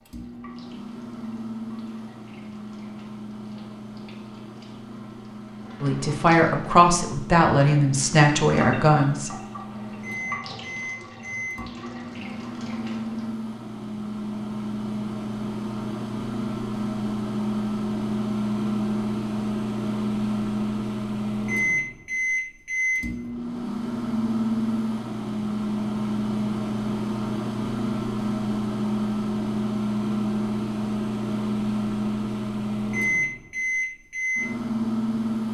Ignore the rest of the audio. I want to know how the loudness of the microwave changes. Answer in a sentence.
The loudness of the microwave goes up.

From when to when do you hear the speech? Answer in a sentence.
The speech can be heard from 5.8 to 9.3 s.